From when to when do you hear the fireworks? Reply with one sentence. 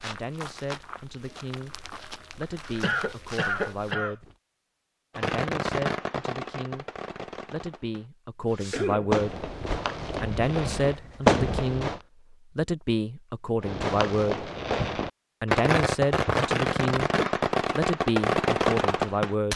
The fireworks can be heard from 5.2 to 12.0 s and from 13.6 to 19.5 s.